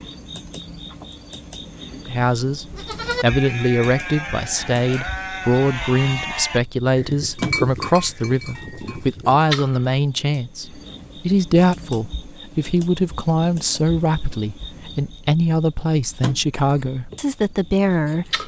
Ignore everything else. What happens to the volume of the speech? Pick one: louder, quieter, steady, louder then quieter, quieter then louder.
steady.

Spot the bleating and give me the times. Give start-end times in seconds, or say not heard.
2.6-9.4.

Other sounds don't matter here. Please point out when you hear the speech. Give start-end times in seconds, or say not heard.
1.9-18.4.